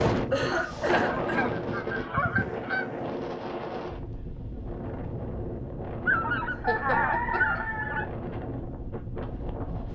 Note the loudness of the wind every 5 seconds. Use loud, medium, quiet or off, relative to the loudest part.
loud, medium.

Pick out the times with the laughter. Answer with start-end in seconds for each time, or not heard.
0.3-1.5, 6.7-7.6.